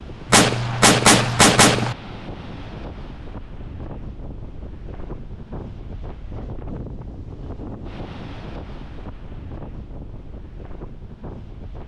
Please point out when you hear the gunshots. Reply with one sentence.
You can hear the gunshots from 0.3 to 1.9 s.